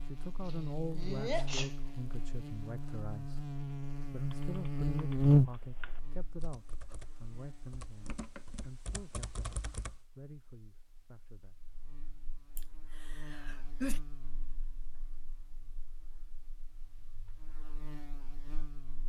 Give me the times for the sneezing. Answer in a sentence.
You can hear the sneezing from 0.5 to 1.8 s and from 12.6 to 14.0 s.